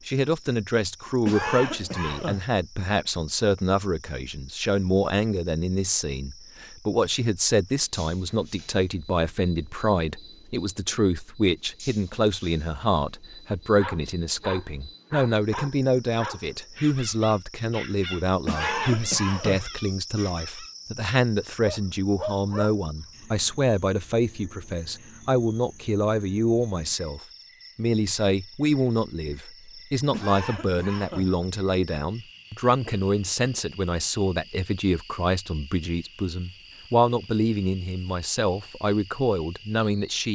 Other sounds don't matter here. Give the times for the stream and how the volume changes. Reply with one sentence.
The stream can't be heard in this clip.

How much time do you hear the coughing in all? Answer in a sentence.
The coughing can be heard for 4 seconds in total.